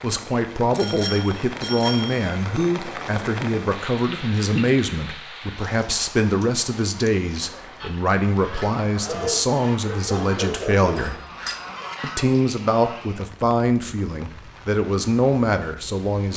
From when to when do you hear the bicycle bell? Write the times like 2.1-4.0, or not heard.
0.8-2.6, 10.9-11.7.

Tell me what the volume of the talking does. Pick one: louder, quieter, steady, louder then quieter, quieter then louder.
steady.